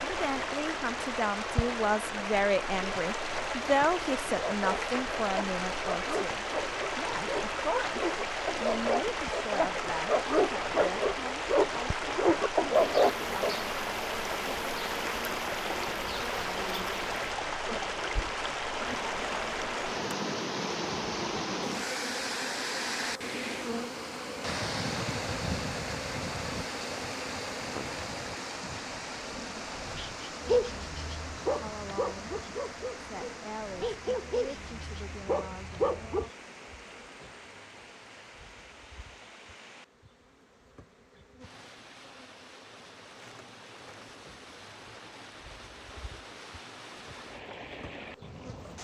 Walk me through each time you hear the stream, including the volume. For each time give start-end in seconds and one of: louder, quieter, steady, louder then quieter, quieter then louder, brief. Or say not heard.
0.0-48.8 quieter.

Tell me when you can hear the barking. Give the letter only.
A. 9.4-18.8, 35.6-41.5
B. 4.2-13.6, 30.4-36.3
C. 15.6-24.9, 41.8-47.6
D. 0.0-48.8
B.